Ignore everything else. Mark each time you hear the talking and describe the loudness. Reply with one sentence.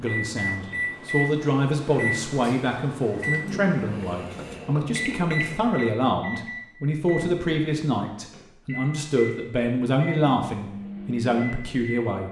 You can hear the talking from 0.0 to 12.2 s, at a steady volume.